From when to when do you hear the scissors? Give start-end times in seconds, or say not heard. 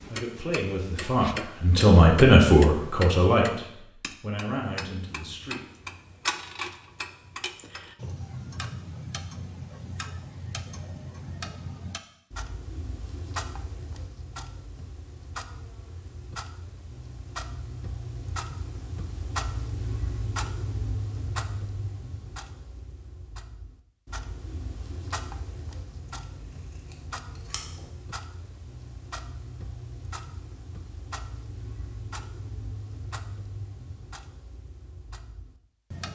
25.9-27.9.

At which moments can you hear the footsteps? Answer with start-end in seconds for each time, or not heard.
not heard.